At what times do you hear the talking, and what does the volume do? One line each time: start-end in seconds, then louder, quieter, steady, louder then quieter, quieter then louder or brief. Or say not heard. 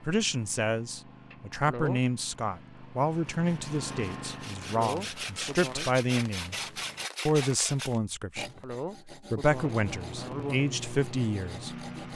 0.0-12.1 steady.